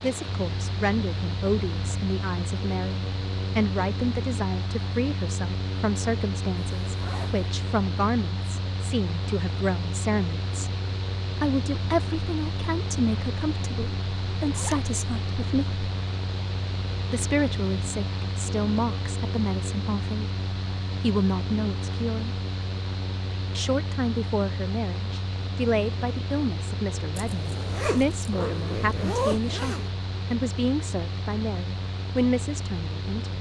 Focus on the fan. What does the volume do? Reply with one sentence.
The volume of the fan stays about the same.